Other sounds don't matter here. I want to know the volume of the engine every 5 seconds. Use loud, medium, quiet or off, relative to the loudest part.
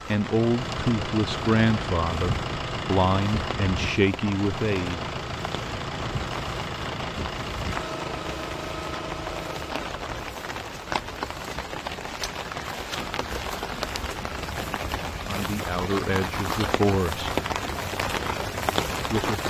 loud, loud, off, off.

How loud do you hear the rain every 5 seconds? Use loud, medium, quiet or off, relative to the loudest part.
medium, medium, loud, loud.